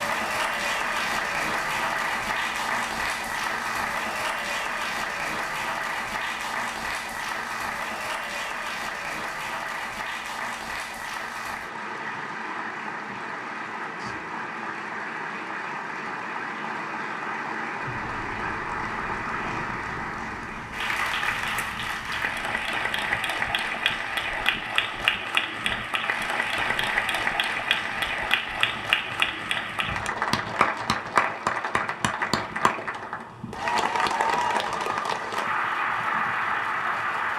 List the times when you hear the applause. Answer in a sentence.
The applause can be heard from 0.0 to 37.3 s.